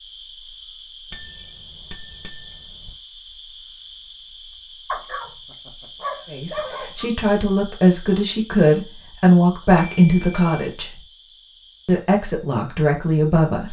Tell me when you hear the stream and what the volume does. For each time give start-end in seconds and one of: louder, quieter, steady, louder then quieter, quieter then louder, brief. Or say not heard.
not heard.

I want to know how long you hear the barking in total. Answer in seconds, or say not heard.
2 s.